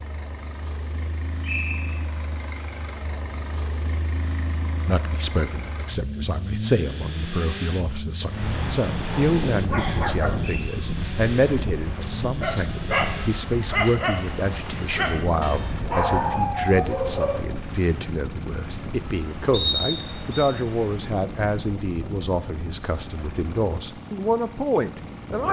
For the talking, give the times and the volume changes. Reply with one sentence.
The talking can be heard from 4.8 to 25.4 s, at a steady volume.